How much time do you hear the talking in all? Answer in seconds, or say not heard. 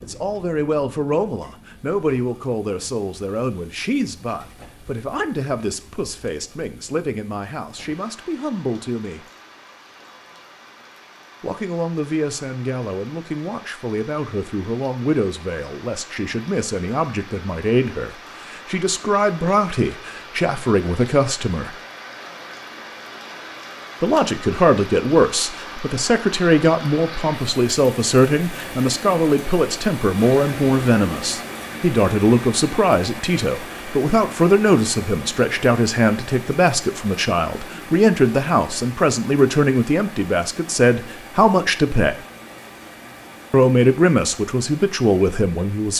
40 s.